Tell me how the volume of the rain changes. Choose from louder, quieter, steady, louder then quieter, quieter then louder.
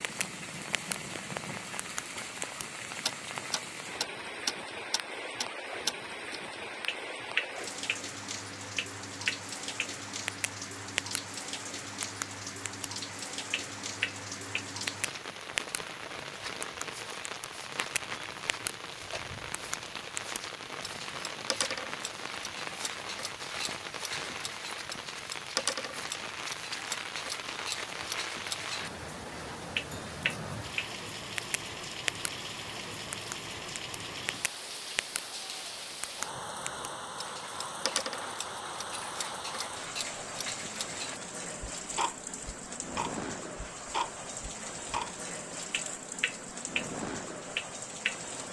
steady.